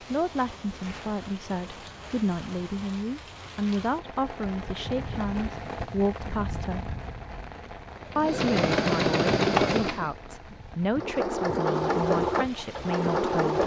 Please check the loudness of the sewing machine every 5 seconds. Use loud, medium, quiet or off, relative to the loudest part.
off, loud, loud.